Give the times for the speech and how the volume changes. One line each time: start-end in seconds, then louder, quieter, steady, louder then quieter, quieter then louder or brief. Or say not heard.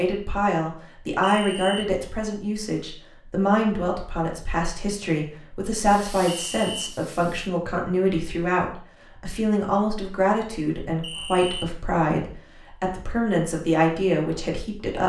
0.0-15.0 steady.